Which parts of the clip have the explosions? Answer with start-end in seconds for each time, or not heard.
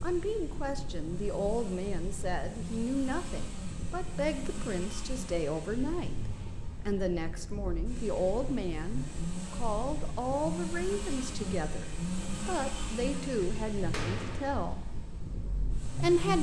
13.9-14.6.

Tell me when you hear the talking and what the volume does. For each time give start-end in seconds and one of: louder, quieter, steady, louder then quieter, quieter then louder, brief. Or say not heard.
0.0-14.8 steady
15.8-16.3 brief.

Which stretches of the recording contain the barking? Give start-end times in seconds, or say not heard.
not heard.